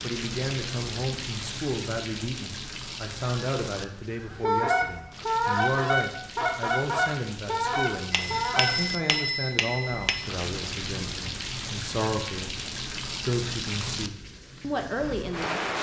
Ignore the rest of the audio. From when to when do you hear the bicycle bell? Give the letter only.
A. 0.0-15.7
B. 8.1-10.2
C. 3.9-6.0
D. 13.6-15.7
B.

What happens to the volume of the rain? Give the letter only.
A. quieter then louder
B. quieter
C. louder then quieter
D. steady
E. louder
A.